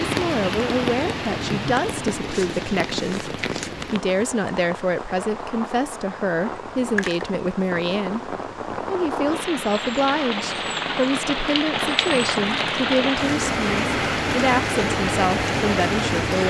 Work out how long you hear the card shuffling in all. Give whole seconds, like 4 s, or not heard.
3 s.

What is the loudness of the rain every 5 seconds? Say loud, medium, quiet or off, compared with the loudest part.
medium, medium, loud, loud.